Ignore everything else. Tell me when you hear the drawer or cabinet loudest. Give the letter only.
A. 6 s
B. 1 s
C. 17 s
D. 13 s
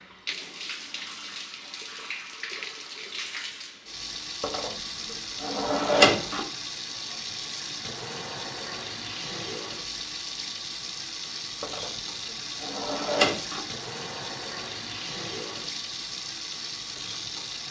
A.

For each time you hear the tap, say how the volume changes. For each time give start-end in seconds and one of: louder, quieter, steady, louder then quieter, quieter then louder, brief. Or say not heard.
0.0-17.6 steady.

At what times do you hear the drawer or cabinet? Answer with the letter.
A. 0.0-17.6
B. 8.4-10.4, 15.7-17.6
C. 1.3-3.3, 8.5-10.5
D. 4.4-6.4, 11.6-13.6
D.